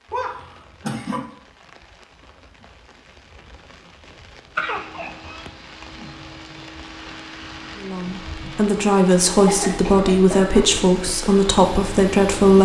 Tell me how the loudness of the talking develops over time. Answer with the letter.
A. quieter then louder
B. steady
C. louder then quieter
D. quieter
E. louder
B.